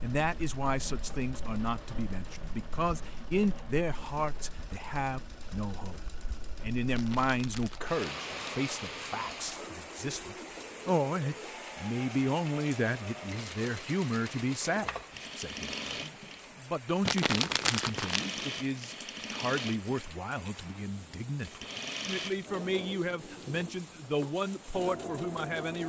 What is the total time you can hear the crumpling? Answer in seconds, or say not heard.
3 s.